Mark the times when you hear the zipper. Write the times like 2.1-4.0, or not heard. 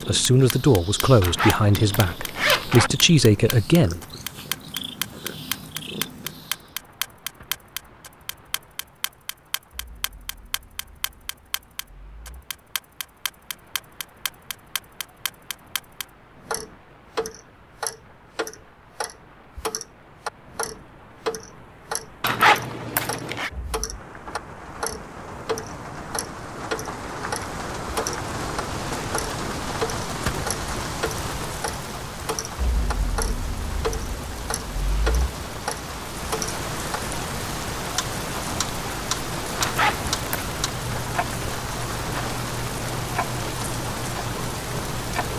1.2-2.9, 22.2-23.5, 39.6-40.6.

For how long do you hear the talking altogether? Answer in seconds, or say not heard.
4 s.